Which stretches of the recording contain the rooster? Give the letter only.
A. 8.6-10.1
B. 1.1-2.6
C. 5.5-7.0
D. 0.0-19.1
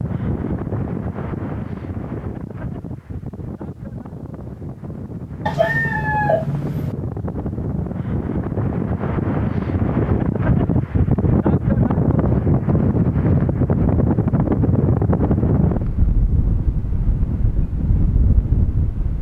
C.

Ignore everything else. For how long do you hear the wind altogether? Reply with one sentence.
The wind can be heard for 19 seconds in total.